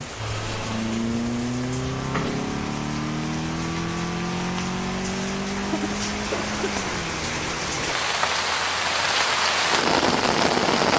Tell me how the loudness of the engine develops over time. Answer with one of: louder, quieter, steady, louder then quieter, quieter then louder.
quieter.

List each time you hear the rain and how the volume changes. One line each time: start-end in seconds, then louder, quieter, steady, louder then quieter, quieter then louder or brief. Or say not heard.
0.0-10.9 louder.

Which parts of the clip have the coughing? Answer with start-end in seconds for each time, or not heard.
5.5-6.8.